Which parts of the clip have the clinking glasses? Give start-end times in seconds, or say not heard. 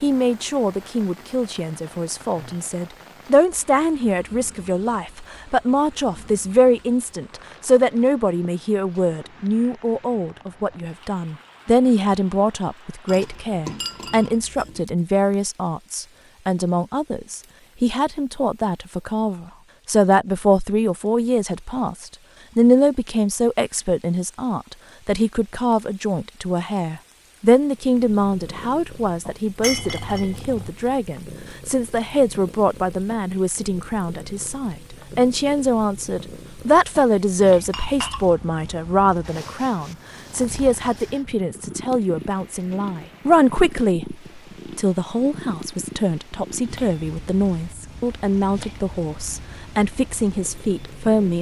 13.1-14.8, 29.6-30.7, 37.7-38.2.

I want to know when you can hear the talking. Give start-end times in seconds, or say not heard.
0.0-44.1, 44.8-51.3.